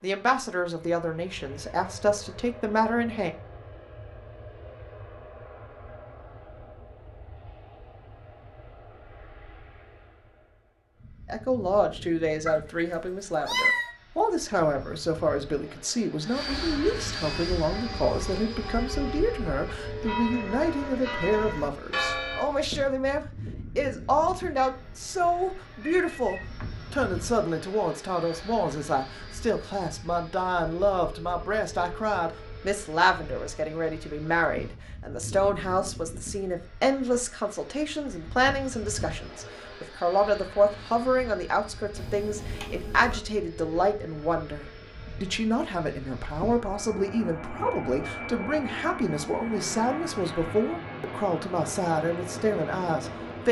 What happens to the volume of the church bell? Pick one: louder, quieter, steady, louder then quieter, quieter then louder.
louder.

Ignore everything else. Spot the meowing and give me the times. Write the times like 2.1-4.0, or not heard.
12.4-13.9, 24.6-26.9, 42.0-43.2.